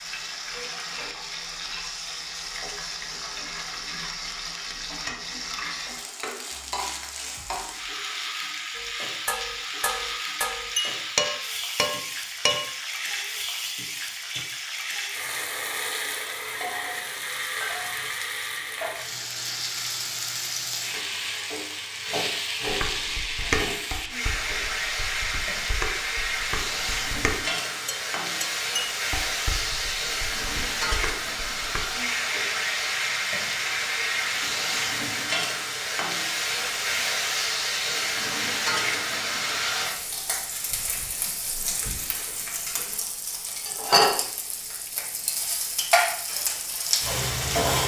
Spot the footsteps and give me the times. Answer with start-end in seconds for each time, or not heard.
not heard.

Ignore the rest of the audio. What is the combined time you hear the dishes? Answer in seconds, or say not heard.
13 s.